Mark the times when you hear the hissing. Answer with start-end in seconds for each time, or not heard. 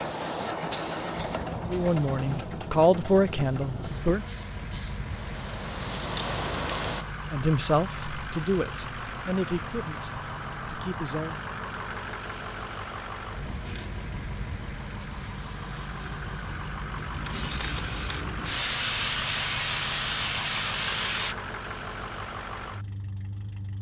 0.0-7.0, 13.6-21.4.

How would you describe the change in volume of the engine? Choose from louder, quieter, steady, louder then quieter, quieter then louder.
steady.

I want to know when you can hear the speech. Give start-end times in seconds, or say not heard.
1.6-4.2, 7.3-11.4.